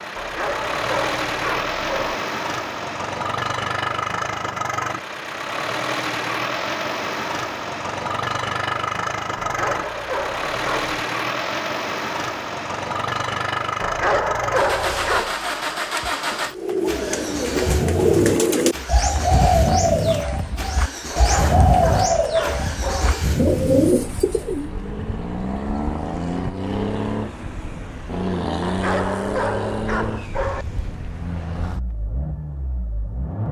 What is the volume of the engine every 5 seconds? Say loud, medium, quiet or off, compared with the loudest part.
loud, loud, loud, loud, loud, loud, medium.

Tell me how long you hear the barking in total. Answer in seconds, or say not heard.
9 s.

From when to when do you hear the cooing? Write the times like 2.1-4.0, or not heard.
16.6-24.7.